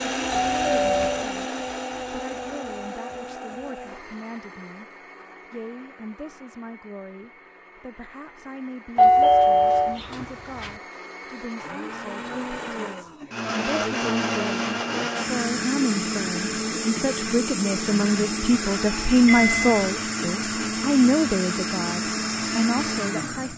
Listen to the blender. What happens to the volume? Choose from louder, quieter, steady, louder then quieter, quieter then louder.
quieter then louder.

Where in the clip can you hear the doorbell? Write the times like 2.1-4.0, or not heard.
0.3-1.3, 8.9-10.7, 18.9-19.9.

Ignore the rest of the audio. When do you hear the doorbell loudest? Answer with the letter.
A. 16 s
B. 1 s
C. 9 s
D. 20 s
C.